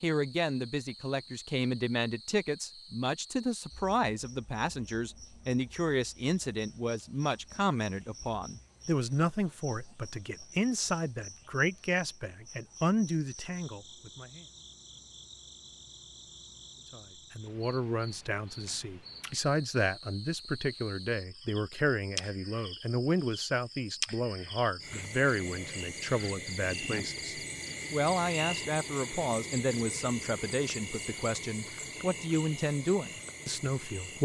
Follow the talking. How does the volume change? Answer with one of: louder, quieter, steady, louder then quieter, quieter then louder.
steady.